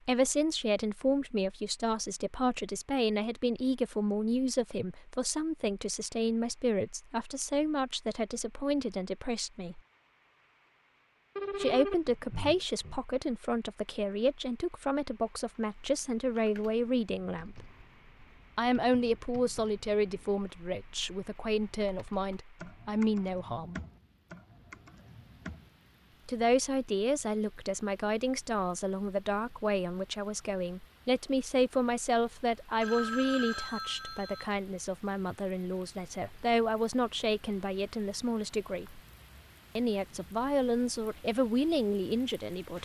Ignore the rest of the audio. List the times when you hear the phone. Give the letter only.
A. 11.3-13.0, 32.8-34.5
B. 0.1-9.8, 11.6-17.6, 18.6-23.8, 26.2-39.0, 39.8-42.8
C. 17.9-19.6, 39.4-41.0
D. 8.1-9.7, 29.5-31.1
A.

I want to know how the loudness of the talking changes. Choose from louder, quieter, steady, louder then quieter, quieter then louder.
steady.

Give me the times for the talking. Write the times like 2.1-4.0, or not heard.
0.1-9.8, 11.6-17.6, 18.6-23.8, 26.2-39.0, 39.8-42.8.